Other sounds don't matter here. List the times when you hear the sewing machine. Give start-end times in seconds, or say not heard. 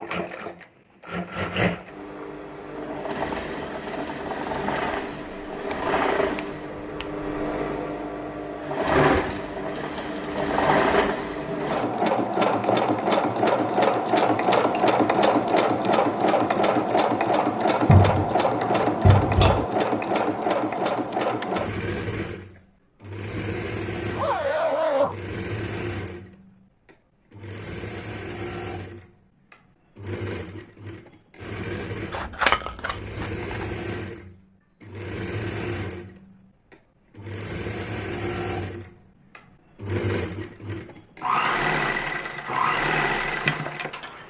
0.0-44.2.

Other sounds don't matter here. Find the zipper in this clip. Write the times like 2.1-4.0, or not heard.
24.1-25.1.